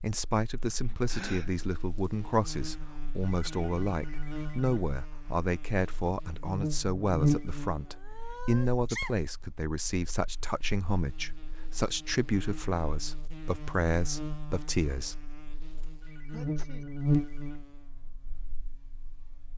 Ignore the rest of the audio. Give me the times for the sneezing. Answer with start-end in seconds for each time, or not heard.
1.1-1.5, 7.8-9.2, 16.3-16.9.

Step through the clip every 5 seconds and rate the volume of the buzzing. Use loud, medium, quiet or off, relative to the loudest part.
medium, loud, medium, loud.